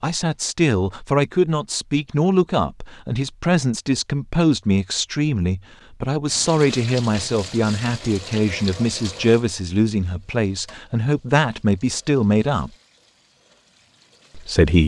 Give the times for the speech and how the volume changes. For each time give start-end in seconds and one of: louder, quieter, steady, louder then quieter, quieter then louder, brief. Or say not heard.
0.0-12.7 steady
14.3-14.8 brief.